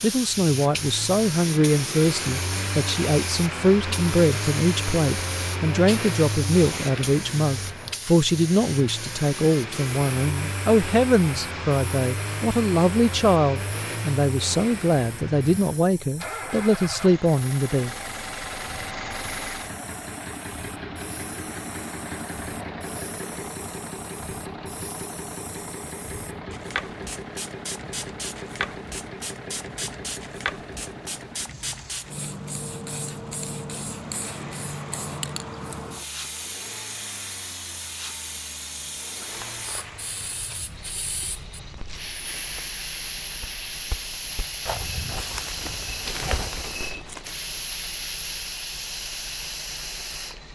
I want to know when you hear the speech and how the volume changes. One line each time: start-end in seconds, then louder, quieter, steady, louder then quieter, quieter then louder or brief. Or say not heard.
0.0-17.9 steady.